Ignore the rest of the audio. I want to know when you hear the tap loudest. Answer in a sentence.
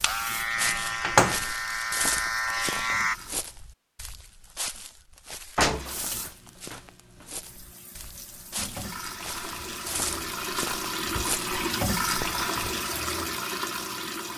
The loudest moment of the tap is at 12 seconds.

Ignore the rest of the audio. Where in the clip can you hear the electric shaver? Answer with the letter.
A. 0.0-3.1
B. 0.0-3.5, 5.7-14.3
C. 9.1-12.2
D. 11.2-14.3
A.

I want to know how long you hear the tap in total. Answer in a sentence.
You can hear the tap for 12 seconds altogether.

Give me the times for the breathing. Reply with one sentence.
You can't hear the breathing here.